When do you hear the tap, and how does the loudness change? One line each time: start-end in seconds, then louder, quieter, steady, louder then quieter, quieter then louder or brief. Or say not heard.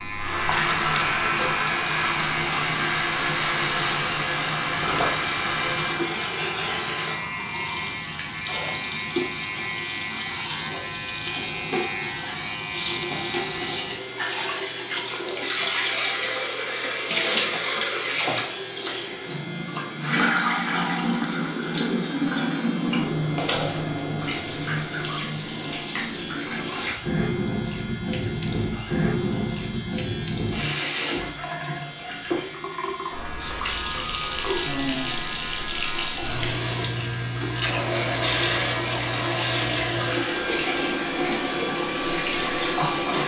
0.0-43.2 steady.